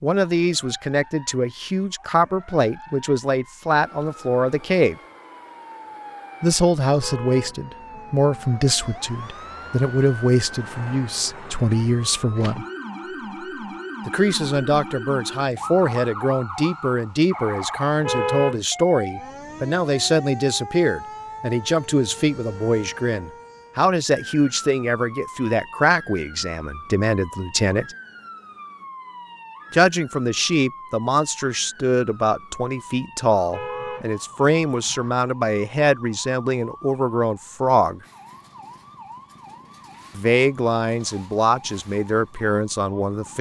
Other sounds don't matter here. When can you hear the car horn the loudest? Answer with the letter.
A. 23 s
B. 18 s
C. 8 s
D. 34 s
B.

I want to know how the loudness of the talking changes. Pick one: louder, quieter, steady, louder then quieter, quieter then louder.
steady.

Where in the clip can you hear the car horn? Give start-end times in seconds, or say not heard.
7.0-8.6, 18.0-18.6, 33.5-35.1.